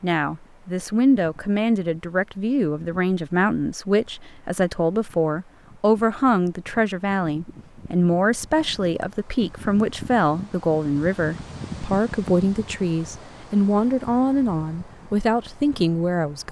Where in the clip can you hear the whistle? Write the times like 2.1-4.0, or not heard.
not heard.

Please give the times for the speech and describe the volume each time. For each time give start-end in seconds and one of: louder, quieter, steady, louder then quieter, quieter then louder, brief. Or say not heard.
0.0-16.4 steady.